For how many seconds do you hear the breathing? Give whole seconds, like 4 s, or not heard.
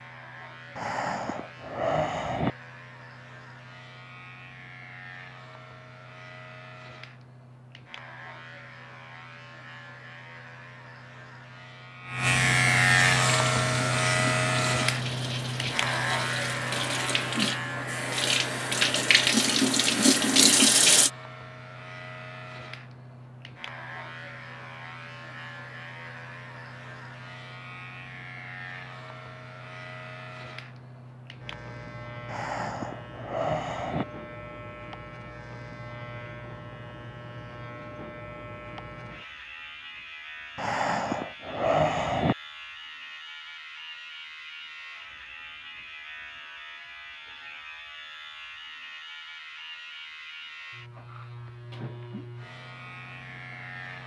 5 s.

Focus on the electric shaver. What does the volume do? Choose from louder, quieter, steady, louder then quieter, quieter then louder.
louder then quieter.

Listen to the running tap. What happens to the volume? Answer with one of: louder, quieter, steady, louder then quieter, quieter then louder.
louder.